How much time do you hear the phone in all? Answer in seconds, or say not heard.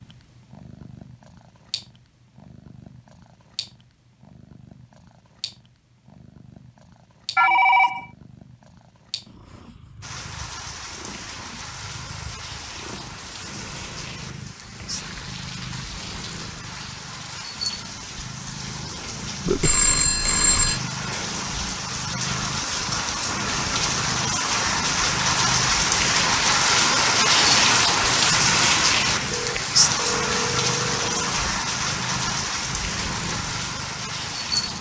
4 s.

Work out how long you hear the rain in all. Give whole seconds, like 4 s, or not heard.
25 s.